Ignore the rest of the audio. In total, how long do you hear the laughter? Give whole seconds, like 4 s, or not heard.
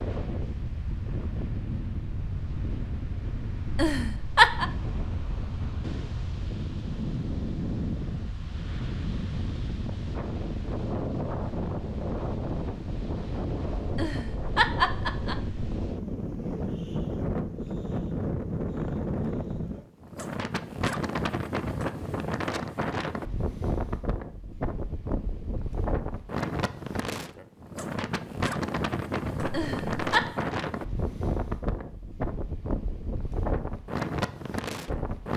4 s.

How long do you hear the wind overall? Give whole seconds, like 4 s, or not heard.
35 s.